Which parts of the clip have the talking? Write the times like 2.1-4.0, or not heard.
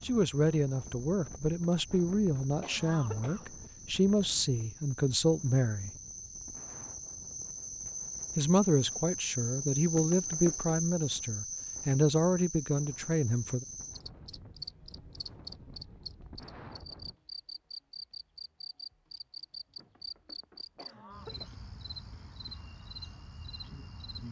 0.0-5.9, 8.3-13.7.